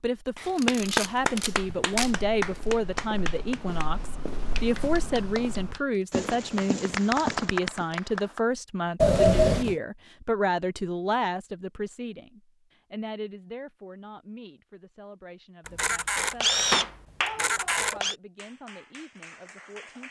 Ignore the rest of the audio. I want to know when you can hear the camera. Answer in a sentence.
You can hear the camera from 0.6 to 2.1 s, from 9.0 to 9.8 s and from 15.7 to 18.1 s.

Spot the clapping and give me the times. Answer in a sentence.
The clapping can be heard from 0.3 to 8.4 s and from 16.7 to 20.0 s.